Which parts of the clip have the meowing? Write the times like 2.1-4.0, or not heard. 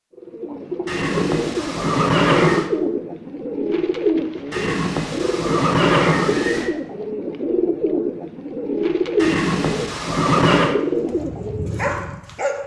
not heard.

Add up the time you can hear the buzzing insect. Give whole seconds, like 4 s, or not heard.
not heard.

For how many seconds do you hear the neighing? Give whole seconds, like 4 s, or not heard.
6 s.